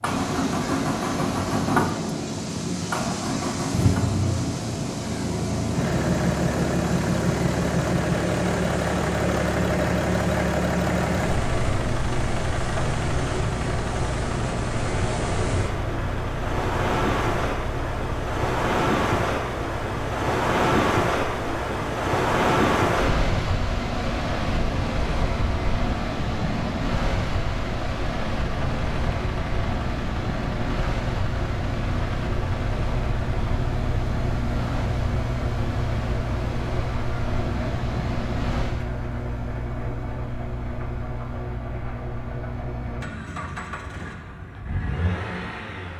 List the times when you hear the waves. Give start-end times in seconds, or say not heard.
0.0-38.9.